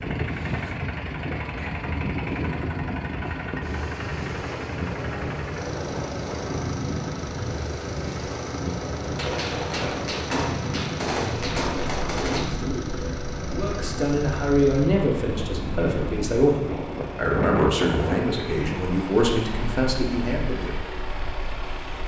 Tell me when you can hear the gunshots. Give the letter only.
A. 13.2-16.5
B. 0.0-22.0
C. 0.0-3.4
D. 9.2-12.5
D.